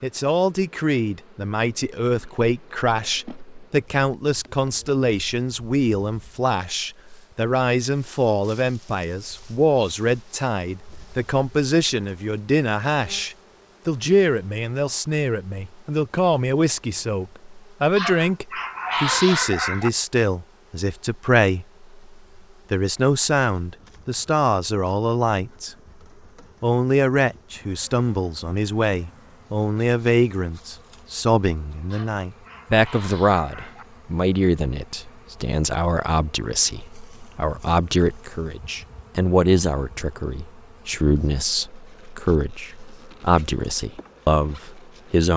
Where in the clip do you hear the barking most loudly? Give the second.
19 s.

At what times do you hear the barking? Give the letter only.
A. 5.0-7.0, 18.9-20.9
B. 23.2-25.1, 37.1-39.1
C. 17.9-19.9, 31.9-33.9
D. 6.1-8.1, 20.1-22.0
C.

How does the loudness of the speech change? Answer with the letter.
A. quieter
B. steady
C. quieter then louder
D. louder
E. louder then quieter
B.